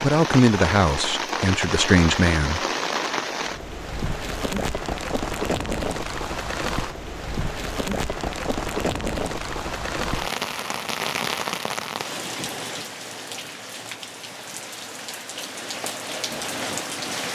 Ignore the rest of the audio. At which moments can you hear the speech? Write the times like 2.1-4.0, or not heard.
0.0-2.6.